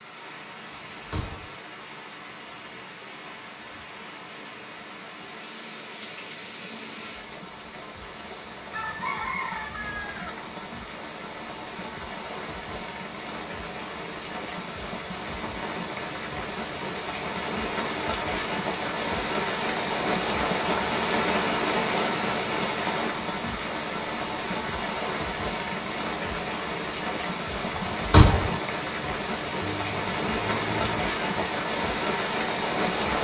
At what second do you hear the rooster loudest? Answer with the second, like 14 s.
9 s.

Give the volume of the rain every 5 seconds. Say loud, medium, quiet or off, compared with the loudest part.
quiet, quiet, medium, loud, loud, loud, loud.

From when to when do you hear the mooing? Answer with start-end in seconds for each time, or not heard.
not heard.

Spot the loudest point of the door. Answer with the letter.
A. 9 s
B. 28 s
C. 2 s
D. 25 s
B.